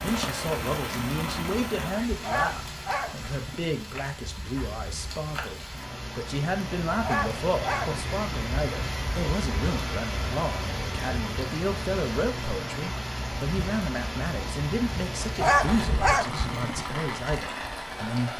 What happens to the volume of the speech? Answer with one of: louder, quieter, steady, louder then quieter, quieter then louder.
steady.